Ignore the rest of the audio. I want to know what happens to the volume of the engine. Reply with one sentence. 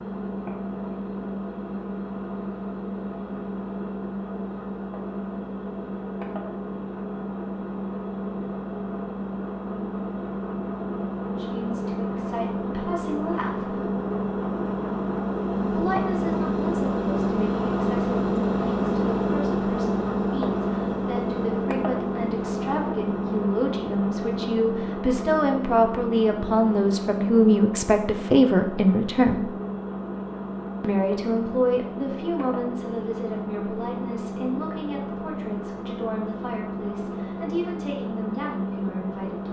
The volume of the engine goes up, then down.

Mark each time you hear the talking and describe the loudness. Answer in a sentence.
The talking can be heard briefly from 11.3 to 13.8 s; from 15.7 to 29.5 s, getting louder; and from 30.8 to 39.4 s, getting quieter.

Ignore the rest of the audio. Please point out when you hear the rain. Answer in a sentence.
You can't hear the rain here.